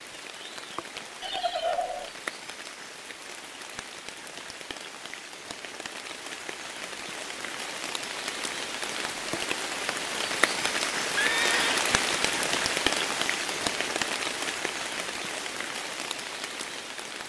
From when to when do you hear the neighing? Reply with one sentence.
You can hear the neighing from 1.2 to 2.1 s and from 11.2 to 11.8 s.